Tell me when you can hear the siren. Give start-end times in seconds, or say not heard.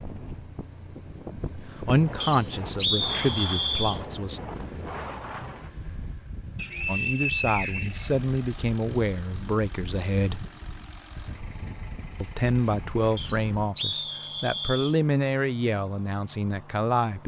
not heard.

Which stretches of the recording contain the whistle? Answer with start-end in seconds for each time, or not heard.
2.2-4.0, 6.5-8.1, 13.2-14.9.